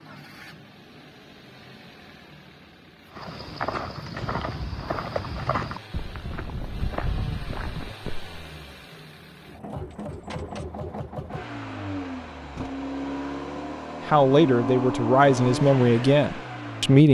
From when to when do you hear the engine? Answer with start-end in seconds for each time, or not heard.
0.0-17.0.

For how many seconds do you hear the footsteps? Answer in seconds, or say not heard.
5 s.